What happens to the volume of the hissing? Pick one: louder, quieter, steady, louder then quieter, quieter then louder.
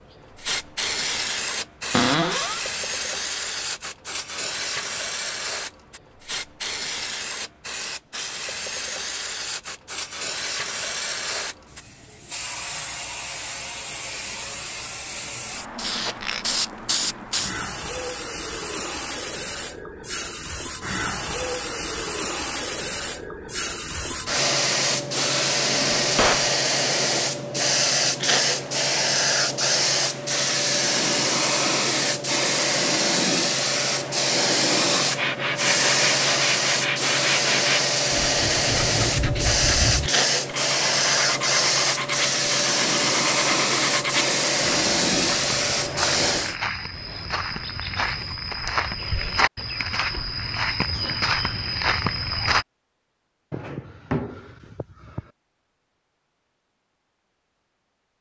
louder.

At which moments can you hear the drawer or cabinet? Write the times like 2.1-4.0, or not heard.
1.9-2.6, 25.7-26.5, 53.5-55.2.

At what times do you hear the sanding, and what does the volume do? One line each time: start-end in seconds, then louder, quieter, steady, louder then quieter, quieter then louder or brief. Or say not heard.
35.1-44.4 steady.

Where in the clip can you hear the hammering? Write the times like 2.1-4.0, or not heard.
not heard.